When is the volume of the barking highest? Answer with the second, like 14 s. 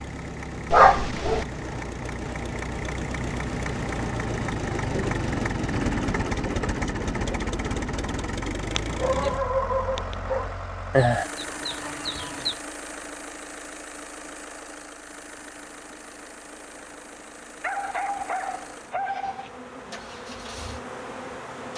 1 s.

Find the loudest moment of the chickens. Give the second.
11 s.